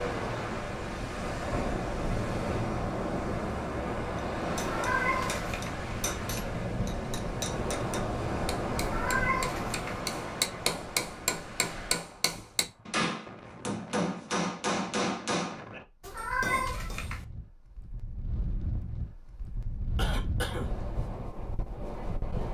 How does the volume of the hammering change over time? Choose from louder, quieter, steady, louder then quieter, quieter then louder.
louder.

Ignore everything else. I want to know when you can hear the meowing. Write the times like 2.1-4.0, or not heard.
4.6-5.8, 8.8-10.0, 16.0-17.2.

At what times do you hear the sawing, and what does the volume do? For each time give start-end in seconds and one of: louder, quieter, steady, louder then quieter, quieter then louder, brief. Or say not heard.
not heard.